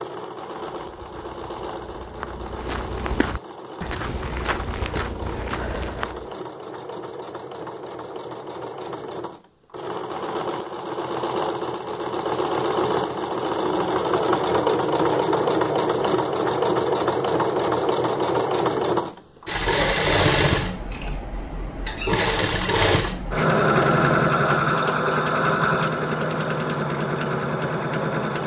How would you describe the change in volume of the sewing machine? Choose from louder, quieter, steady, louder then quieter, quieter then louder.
louder.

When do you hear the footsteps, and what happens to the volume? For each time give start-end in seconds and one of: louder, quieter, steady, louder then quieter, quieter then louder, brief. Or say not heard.
0.8-6.3 louder.